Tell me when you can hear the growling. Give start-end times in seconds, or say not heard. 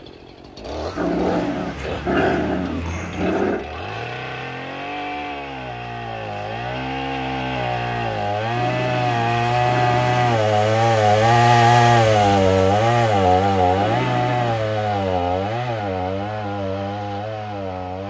0.9-3.6, 8.6-10.4, 13.8-14.7.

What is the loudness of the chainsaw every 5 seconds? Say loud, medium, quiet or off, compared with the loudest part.
quiet, medium, loud, medium.